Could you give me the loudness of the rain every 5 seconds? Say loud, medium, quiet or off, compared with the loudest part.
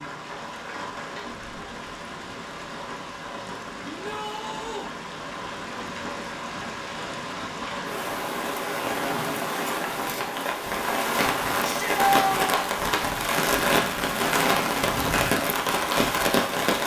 quiet, medium, loud, loud.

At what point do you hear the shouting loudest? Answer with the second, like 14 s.
12 s.